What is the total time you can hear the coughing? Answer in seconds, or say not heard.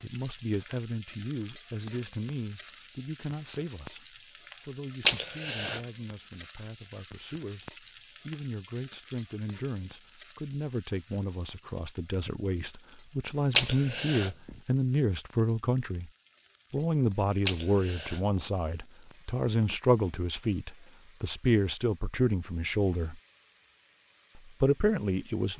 2 s.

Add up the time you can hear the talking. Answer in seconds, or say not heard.
24 s.